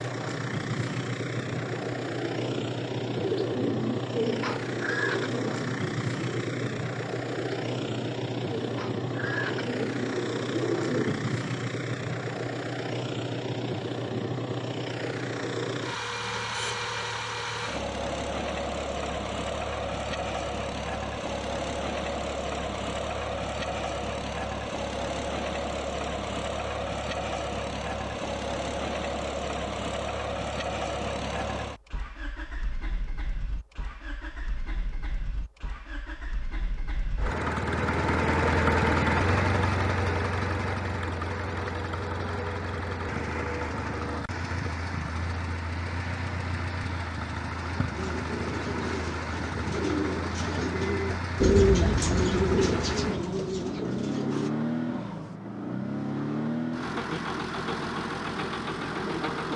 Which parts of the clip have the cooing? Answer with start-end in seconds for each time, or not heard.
1.6-11.3, 47.9-54.5.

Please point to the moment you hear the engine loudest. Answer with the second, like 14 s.
39 s.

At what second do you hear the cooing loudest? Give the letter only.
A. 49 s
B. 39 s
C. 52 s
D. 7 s
C.